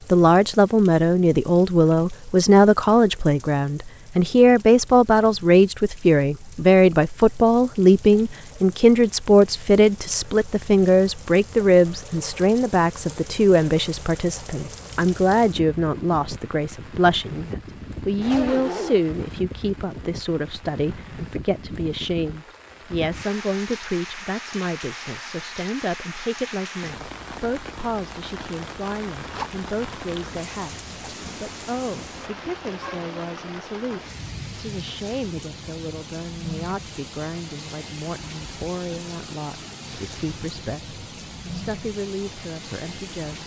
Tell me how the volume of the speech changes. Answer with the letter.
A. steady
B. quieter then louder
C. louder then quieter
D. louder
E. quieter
E.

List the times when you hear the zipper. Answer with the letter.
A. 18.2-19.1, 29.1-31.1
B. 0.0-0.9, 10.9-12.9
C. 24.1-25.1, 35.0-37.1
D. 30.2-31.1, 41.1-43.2
A.